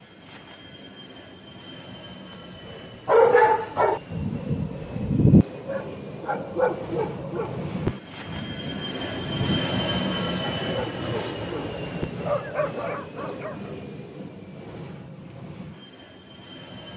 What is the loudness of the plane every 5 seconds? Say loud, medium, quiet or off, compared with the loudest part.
medium, loud, loud, medium.